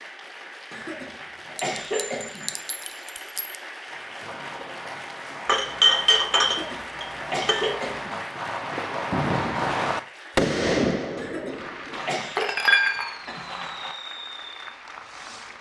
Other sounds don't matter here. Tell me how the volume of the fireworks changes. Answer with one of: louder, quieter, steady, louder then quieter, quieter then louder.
louder then quieter.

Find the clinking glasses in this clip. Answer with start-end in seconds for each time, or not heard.
1.6-3.5, 5.5-7.8, 11.9-13.9.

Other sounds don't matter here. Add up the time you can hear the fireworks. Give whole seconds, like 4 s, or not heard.
12 s.